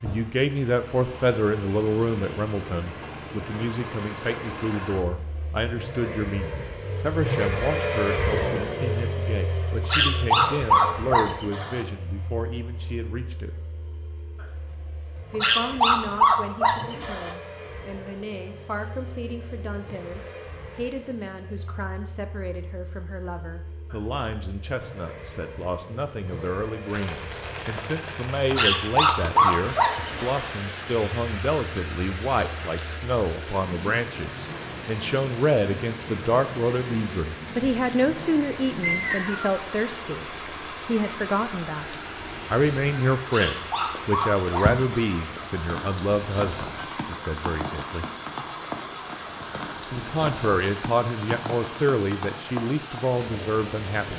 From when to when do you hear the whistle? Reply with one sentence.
The whistle can be heard from 38.8 to 39.5 s.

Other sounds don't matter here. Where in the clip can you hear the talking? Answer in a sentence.
The talking can be heard from 0.0 to 13.5 s, from 15.3 to 48.0 s and from 49.9 to 54.1 s.